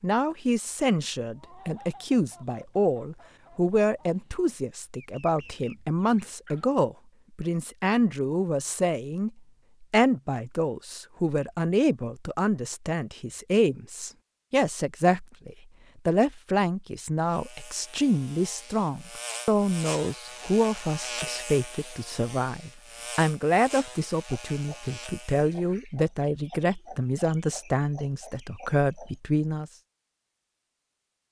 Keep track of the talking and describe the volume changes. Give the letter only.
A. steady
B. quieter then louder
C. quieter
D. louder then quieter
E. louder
A.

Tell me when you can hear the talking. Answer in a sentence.
You can hear the talking from 0.0 to 29.7 s.